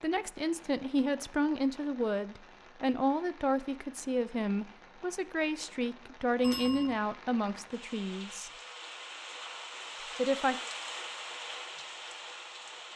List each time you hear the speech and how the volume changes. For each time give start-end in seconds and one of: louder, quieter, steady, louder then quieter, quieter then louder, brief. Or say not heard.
0.0-8.5 steady
10.2-10.6 brief.